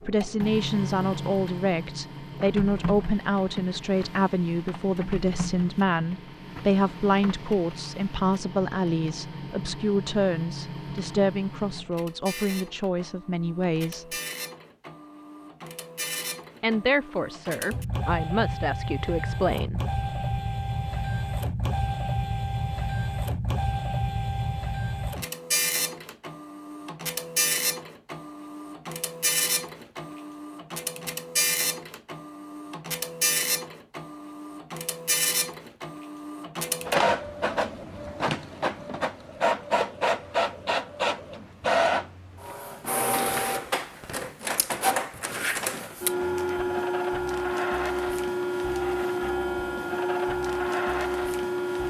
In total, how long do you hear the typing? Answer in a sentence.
The typing can't be heard in this clip.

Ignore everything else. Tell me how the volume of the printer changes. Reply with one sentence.
The volume of the printer goes up.